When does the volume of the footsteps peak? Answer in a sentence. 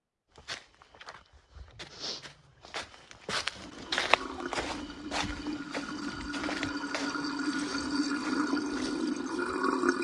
The loudest moment of the footsteps is at 4 seconds.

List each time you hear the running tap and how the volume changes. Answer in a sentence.
The running tap can be heard from 3.5 to 9.9 s, getting louder.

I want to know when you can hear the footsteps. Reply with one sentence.
The footsteps can be heard from 0.3 to 9.6 s.